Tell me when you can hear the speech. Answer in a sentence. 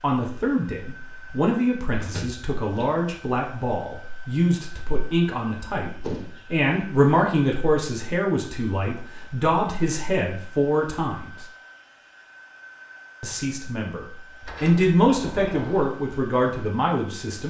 The speech can be heard from 0.0 to 11.4 s and from 13.2 to 17.4 s.